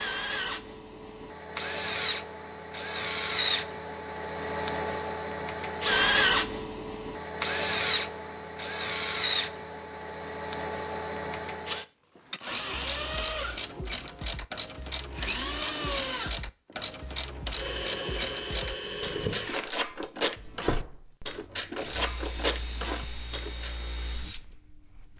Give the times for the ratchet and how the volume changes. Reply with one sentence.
You can hear the ratchet from 12.3 to 23.8 s, at a steady volume.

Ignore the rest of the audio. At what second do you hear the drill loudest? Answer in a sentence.
The loudest moment of the drill is at 6 seconds.